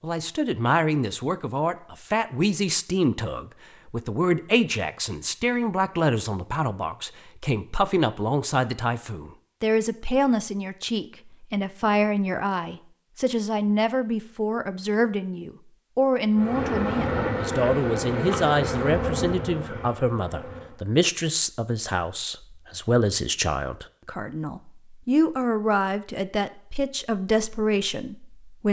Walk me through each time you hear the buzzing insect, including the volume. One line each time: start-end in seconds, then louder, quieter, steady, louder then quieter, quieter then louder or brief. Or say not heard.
16.4-20.8 quieter.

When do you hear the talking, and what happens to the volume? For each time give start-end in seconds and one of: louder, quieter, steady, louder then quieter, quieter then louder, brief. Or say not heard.
0.0-28.6 steady.